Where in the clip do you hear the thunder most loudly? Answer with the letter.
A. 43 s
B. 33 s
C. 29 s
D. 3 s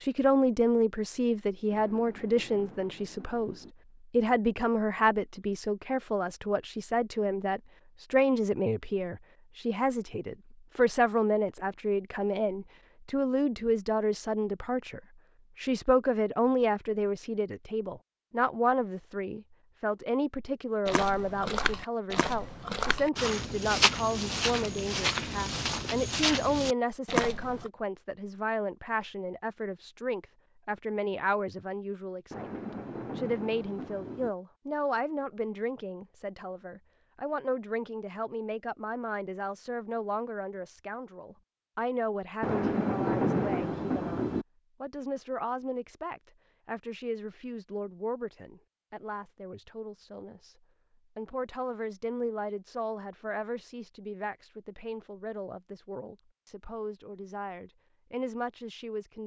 A.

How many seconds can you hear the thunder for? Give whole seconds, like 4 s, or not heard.
6 s.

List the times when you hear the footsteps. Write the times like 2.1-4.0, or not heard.
20.9-27.7.